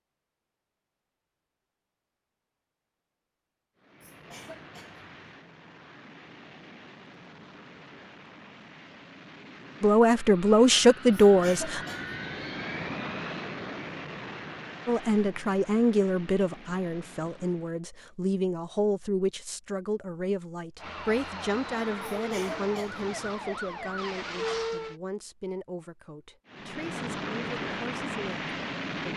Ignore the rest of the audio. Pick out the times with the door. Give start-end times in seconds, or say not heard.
not heard.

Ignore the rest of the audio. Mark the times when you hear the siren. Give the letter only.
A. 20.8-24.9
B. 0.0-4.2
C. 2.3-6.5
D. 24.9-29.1
A.